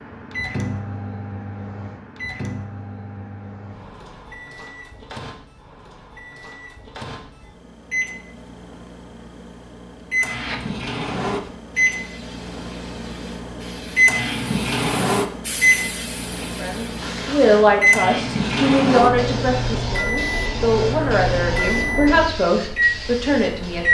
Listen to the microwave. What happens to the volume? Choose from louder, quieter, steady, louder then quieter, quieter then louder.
louder.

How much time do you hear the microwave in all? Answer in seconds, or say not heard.
24 s.